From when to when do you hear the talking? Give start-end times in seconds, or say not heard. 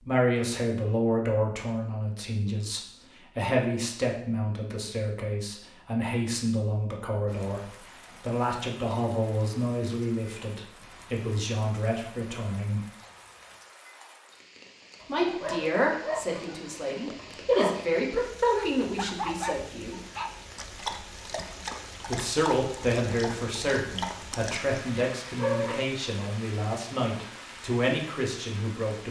0.0-12.8, 15.1-19.9, 22.1-29.0.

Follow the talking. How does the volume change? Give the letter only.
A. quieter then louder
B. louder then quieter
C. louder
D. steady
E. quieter
D.